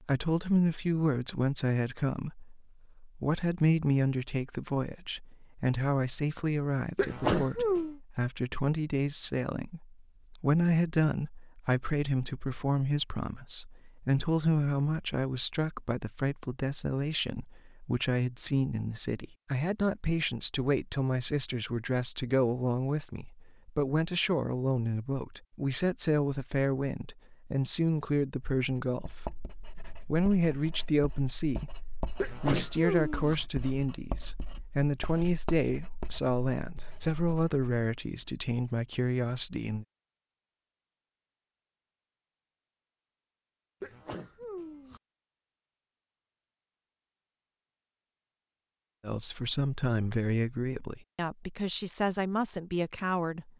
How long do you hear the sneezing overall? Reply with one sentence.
You can hear the sneezing for 3 seconds altogether.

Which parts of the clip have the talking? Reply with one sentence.
You can hear the talking from 0.0 to 39.9 s and from 49.0 to 53.5 s.